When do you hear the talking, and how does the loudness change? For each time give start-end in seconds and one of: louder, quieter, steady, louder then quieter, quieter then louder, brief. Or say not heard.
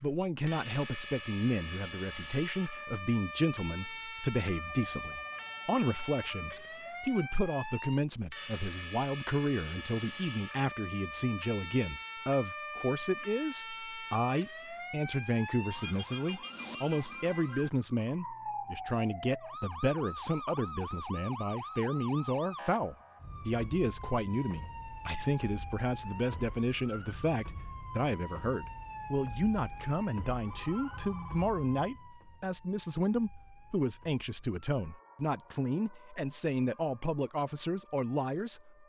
0.0-38.8 steady.